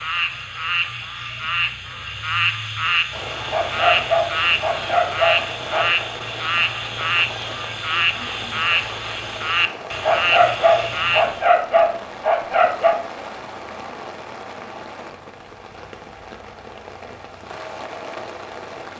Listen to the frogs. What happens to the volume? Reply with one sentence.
The loudness of the frogs stays about the same.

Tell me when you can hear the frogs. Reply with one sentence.
You can hear the frogs from 0.0 to 11.6 s.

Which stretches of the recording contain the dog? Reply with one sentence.
The dog can be heard from 3.5 to 6.1 s and from 10.0 to 12.9 s.